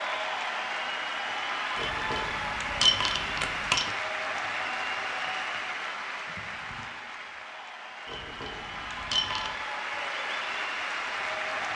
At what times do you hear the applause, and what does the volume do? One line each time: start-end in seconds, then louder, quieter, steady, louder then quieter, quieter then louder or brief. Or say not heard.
0.0-11.7 quieter then louder.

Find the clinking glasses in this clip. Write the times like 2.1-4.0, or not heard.
1.8-4.0, 8.1-9.6.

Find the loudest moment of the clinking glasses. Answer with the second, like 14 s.
3 s.